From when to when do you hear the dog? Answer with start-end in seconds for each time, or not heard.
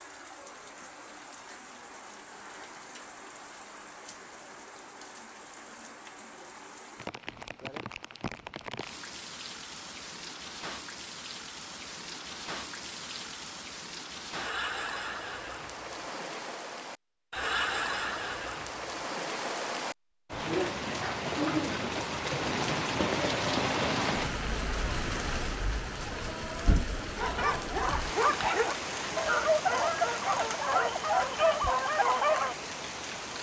27.1-32.5.